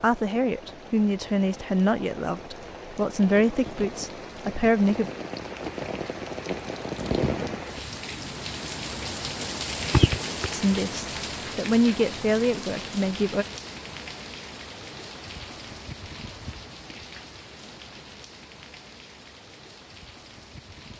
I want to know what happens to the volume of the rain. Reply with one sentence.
The volume of the rain goes up, then down.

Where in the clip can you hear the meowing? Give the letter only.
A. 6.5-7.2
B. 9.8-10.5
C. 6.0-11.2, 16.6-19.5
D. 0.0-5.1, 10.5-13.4
B.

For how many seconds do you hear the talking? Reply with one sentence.
The talking can be heard for 8 seconds in total.